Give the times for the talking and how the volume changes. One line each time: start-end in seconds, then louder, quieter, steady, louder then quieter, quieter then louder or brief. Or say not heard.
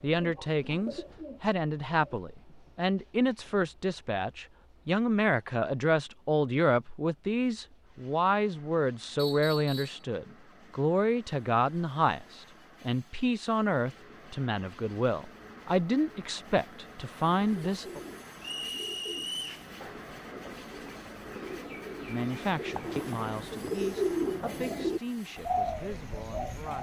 0.0-18.0 steady
22.1-26.7 quieter.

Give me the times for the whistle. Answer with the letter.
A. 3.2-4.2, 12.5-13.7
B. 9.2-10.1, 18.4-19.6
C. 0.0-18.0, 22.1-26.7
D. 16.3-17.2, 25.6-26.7
B.